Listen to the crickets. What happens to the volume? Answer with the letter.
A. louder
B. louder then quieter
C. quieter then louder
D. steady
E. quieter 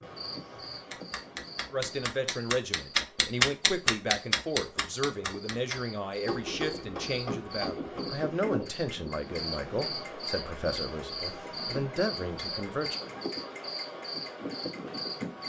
A.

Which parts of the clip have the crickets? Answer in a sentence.
The crickets can be heard from 0.0 to 15.4 s.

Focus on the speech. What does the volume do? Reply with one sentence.
The loudness of the speech stays about the same.